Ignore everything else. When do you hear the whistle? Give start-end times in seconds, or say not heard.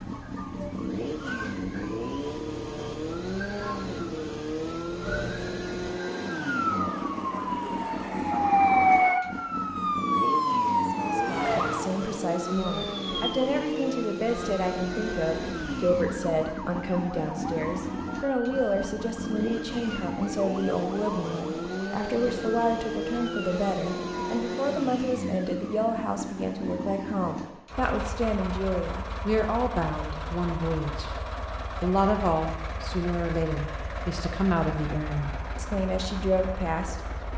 not heard.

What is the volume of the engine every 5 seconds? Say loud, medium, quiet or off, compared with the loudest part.
loud, loud, loud, loud, loud, loud, medium, medium.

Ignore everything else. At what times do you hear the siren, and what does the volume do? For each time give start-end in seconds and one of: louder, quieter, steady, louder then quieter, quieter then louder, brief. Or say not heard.
0.0-24.5 louder then quieter.